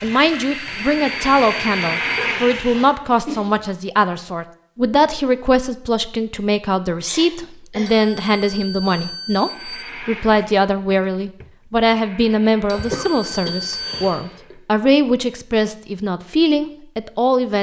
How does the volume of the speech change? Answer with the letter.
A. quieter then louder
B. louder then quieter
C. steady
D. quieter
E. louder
C.